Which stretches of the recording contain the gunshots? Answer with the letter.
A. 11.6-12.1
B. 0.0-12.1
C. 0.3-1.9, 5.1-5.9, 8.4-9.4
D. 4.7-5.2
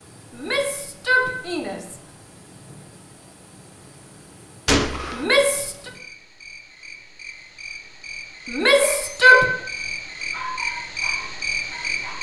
D.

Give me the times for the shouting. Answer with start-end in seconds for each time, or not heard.
0.3-1.9, 5.1-5.9, 8.4-9.4.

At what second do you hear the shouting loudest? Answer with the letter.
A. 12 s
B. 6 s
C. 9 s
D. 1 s
C.